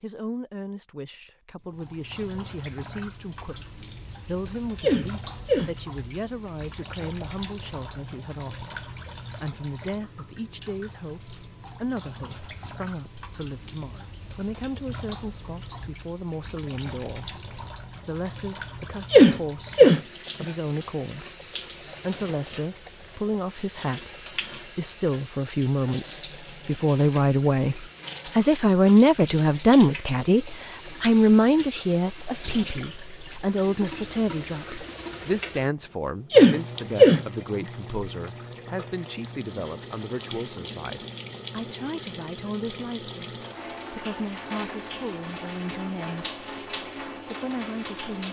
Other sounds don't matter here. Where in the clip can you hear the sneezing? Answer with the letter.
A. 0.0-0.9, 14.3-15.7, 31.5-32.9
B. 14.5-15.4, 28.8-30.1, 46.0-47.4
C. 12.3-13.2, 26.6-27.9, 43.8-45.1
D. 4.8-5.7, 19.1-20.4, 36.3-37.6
D.